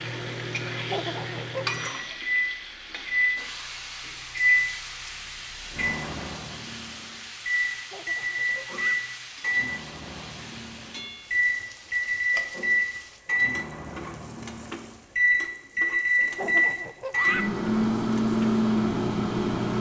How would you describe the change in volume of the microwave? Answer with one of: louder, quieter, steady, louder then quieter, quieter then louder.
louder.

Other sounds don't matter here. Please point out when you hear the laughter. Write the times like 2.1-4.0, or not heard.
0.9-1.8, 7.9-9.0, 16.4-17.5.